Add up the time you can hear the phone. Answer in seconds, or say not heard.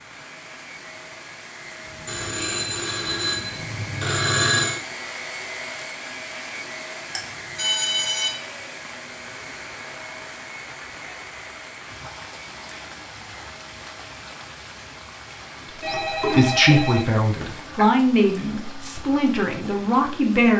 6 s.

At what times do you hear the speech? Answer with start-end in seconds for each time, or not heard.
16.2-20.5.